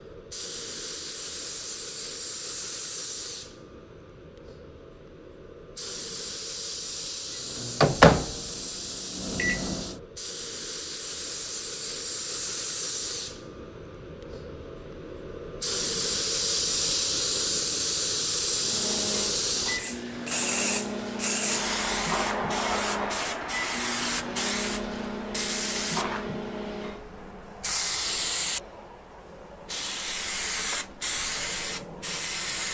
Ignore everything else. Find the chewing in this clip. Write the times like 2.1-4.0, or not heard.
not heard.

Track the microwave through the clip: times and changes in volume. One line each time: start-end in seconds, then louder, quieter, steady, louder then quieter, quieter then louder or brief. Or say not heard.
7.5-10.0 brief
18.6-27.1 steady.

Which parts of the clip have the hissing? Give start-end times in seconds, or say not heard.
0.0-32.6.